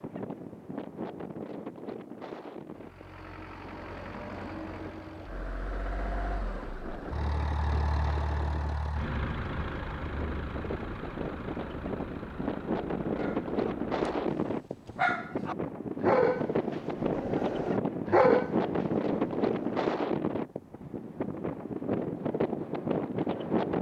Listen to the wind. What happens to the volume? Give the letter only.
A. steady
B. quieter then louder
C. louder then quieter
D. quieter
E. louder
E.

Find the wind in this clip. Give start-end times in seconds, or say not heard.
0.0-23.7.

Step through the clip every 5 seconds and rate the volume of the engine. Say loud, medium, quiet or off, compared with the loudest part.
medium, loud, medium, off, off.